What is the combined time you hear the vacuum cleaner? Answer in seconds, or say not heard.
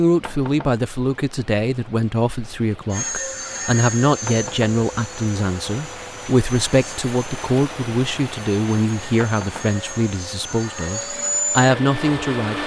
10 s.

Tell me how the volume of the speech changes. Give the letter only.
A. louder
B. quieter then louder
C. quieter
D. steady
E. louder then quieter
D.